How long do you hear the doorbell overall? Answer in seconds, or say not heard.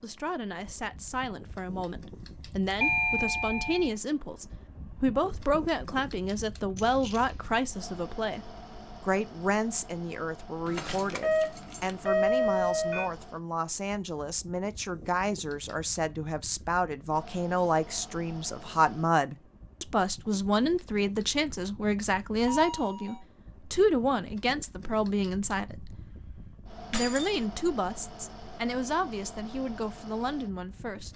4 s.